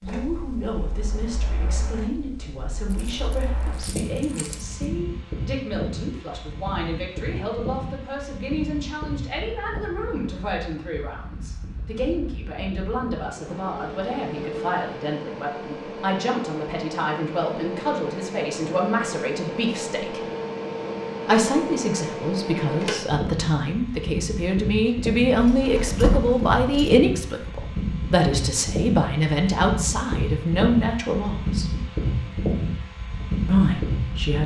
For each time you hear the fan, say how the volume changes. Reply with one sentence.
The fan can be heard from 0.0 to 34.4 s, getting louder.